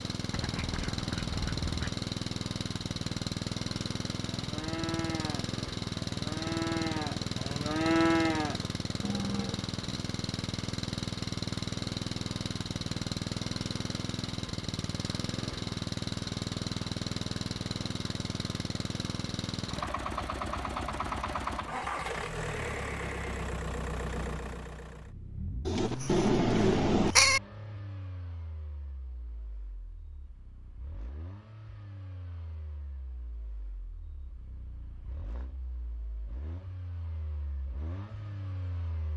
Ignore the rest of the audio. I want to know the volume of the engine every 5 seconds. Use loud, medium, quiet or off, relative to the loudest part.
loud, loud, loud, loud, loud, medium, quiet, quiet.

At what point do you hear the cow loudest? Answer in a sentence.
The loudest moment of the cow is at 8 seconds.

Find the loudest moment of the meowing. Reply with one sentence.
The loudest moment of the meowing is at 27 seconds.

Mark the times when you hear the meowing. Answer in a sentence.
The meowing can be heard from 25.6 to 27.4 s.